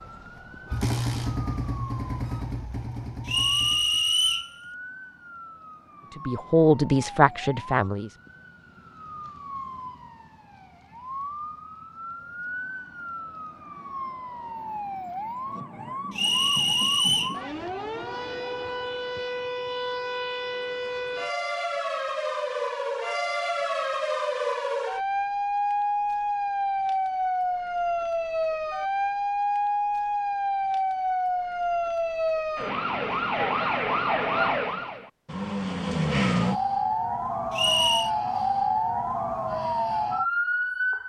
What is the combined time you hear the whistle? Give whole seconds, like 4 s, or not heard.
3 s.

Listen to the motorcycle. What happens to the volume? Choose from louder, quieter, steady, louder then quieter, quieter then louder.
quieter.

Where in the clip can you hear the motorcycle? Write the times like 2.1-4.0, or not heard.
0.0-4.0.